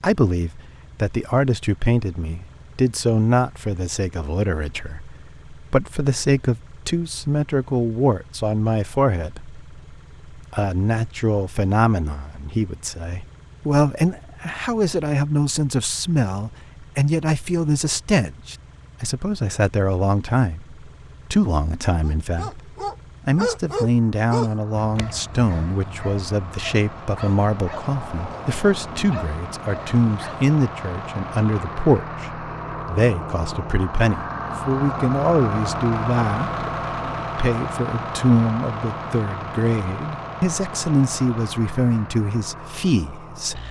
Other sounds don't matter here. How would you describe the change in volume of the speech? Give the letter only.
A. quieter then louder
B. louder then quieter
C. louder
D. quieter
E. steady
E.